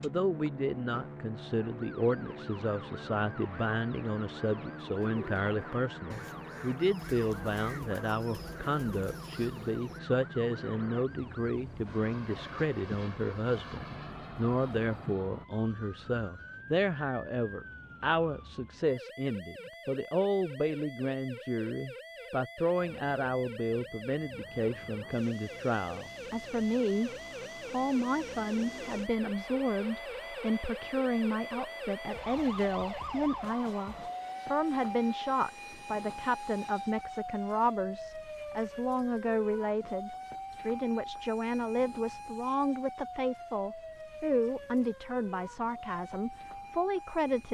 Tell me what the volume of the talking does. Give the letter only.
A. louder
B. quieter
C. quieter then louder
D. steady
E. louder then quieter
D.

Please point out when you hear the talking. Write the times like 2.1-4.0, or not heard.
0.0-47.4.